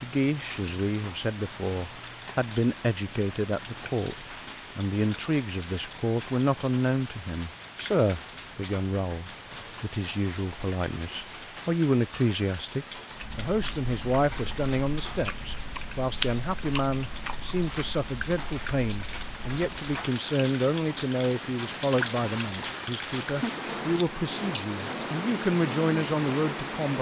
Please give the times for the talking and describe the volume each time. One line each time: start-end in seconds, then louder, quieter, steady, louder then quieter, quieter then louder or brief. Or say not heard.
0.0-26.9 steady.